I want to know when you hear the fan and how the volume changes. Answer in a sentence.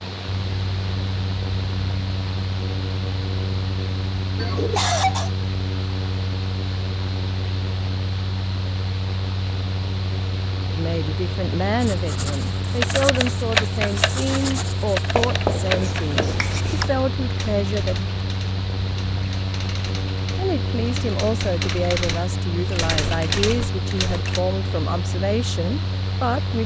The fan can be heard from 0.0 to 26.6 s, at a steady volume.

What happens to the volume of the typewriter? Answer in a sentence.
The volume of the typewriter goes down, then up.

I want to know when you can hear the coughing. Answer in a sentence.
The coughing can be heard from 4.3 to 5.3 s.